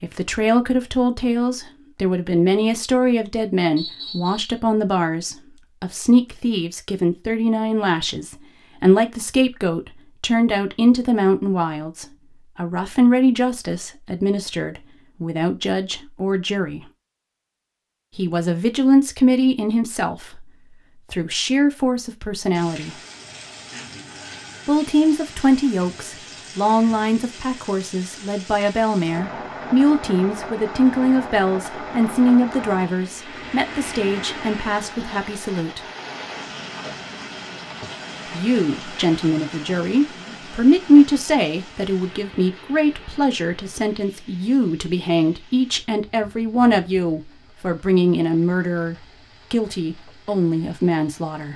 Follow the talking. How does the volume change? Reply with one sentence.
The volume of the talking stays about the same.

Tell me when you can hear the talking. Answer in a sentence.
The talking can be heard from 0.0 to 16.9 s, from 18.1 to 22.9 s, from 24.6 to 35.8 s and from 38.3 to 51.5 s.